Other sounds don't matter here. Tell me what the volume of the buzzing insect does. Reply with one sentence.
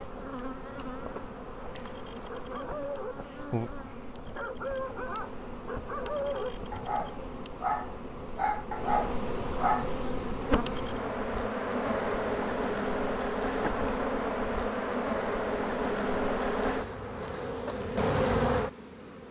The volume of the buzzing insect goes up.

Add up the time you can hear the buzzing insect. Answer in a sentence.
You can hear the buzzing insect for 19 seconds altogether.